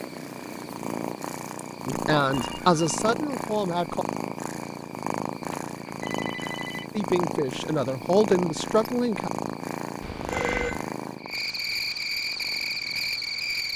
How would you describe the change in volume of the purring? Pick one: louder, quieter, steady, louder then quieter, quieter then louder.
quieter.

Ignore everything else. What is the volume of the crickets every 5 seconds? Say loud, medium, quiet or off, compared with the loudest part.
quiet, quiet, loud.